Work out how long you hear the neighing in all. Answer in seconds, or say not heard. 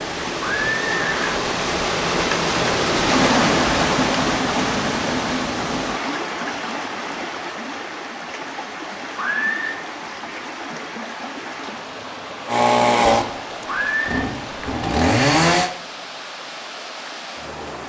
2 s.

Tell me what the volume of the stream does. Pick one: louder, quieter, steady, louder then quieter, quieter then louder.
quieter.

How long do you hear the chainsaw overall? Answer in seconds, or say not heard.
3 s.